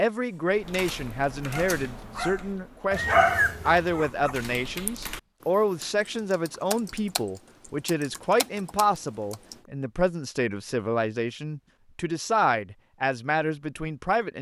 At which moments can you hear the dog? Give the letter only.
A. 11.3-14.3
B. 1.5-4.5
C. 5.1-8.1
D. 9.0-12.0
B.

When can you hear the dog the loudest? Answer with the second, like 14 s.
3 s.